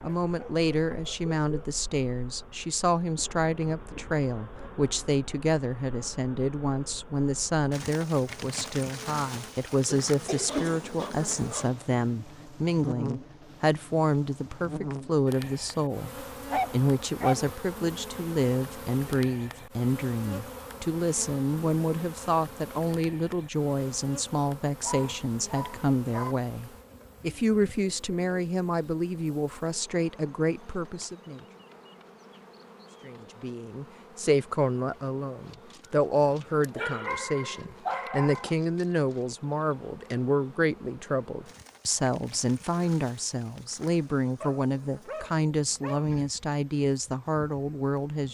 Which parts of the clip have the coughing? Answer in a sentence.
You can hear the coughing from 9.8 to 11.5 s.